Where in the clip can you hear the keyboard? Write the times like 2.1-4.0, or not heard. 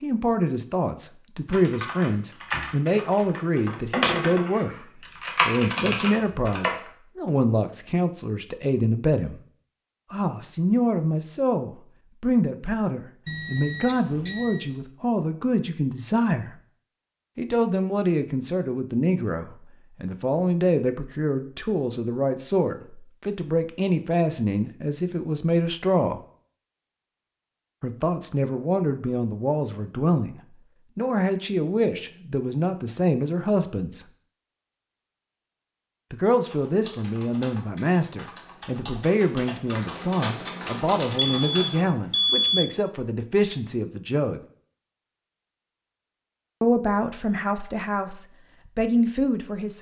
1.4-6.9, 36.4-41.9.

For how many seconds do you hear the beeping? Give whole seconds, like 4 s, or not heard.
3 s.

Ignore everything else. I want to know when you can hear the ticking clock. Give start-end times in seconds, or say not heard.
not heard.